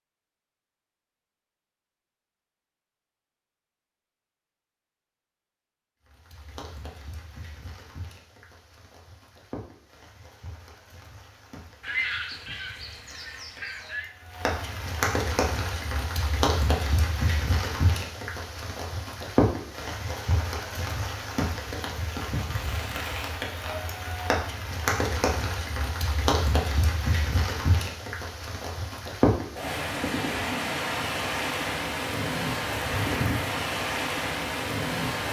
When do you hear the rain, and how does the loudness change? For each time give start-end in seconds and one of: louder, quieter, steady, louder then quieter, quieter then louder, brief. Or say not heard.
6.0-35.2 louder.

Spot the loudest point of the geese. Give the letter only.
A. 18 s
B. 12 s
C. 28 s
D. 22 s
B.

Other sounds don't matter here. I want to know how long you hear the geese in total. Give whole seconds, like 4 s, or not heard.
2 s.